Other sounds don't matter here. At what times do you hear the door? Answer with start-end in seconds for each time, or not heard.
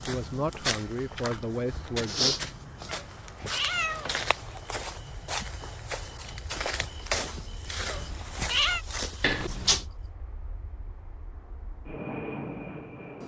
3.9-4.3, 9.2-9.8.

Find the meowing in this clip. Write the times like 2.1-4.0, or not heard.
2.9-4.6, 7.8-8.8.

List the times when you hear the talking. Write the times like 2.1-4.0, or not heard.
0.1-2.5.